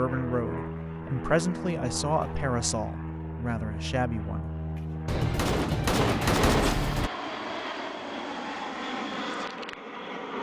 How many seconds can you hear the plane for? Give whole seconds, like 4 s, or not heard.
10 s.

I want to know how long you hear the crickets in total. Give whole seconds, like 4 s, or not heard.
not heard.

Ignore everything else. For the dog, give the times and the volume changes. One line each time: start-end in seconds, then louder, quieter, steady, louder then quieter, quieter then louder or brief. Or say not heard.
not heard.